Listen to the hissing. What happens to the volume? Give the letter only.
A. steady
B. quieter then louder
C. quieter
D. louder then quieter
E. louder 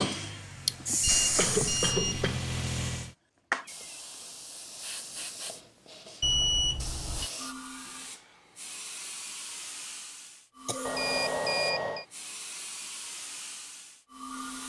C.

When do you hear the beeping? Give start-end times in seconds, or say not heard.
1.0-2.3, 6.2-7.3, 10.8-12.1.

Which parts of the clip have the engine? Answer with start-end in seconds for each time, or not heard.
0.0-3.1.